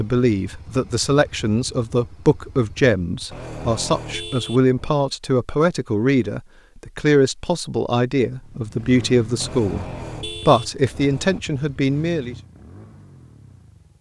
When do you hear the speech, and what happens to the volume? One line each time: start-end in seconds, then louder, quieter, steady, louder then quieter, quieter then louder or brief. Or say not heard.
0.0-12.3 steady.